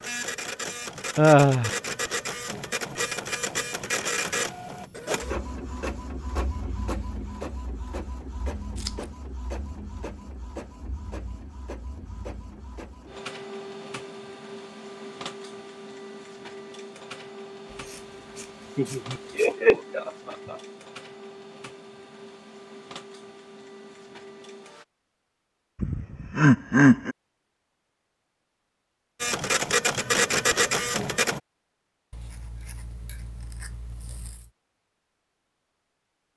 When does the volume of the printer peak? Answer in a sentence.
The volume of the printer peaks at 30 seconds.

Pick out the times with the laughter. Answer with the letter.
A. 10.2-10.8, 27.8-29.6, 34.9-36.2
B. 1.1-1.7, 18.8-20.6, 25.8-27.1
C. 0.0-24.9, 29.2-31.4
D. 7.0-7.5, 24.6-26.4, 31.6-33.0
B.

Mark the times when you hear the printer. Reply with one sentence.
The printer can be heard from 0.0 to 24.9 s and from 29.2 to 31.4 s.